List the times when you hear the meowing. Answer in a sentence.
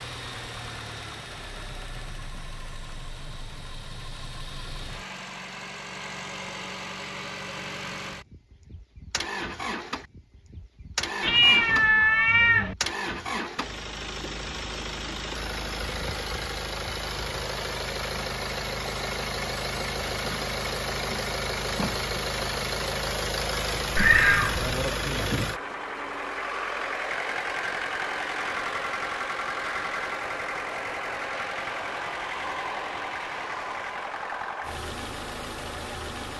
You can hear the meowing from 11.2 to 12.8 s and from 23.9 to 24.9 s.